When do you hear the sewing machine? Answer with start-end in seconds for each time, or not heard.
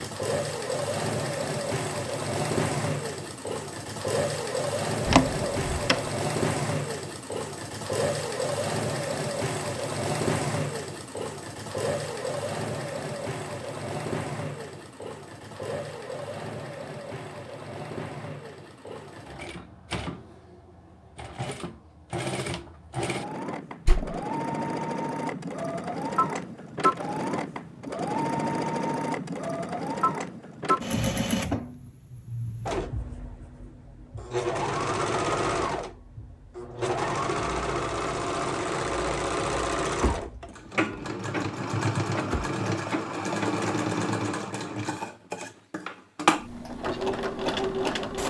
0.0-48.2.